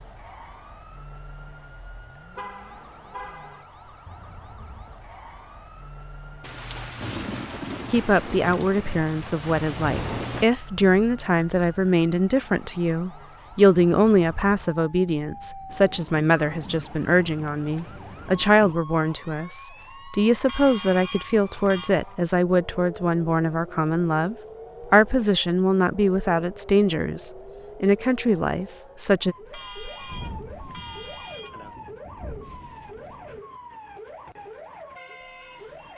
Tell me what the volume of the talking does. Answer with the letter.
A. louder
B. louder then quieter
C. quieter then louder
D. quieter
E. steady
E.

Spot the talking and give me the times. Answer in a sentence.
You can hear the talking from 7.9 to 29.4 s.